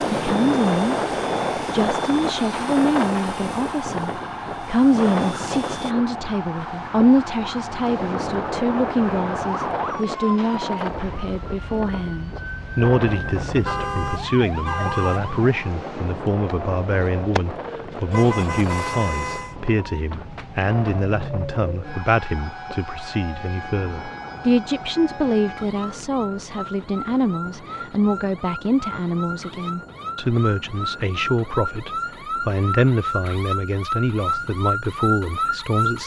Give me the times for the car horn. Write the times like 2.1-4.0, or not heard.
13.1-15.5, 18.1-19.6.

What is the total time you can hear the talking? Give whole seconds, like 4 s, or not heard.
36 s.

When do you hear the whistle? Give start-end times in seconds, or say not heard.
not heard.